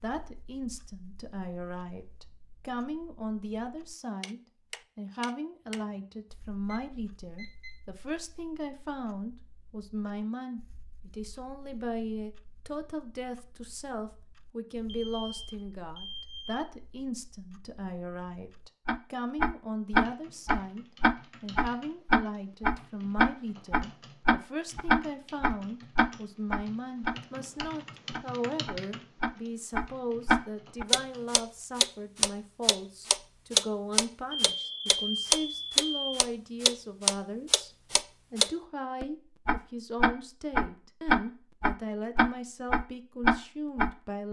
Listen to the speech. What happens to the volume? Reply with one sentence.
The volume of the speech stays about the same.